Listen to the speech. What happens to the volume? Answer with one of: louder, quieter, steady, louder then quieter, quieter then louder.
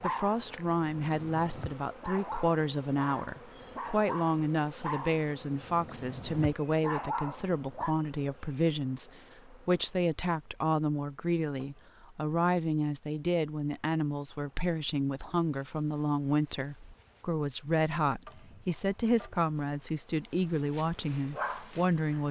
steady.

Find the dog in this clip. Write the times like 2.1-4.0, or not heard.
0.0-8.0, 21.1-22.2.